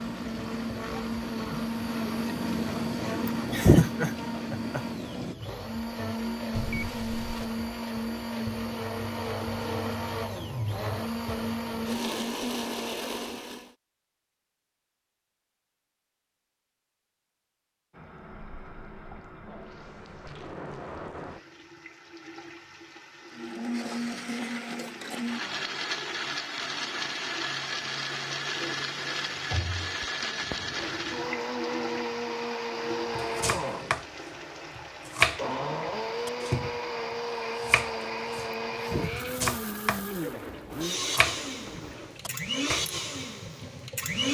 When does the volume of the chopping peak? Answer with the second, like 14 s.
35 s.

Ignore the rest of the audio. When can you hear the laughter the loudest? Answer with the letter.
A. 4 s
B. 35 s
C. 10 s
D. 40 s
A.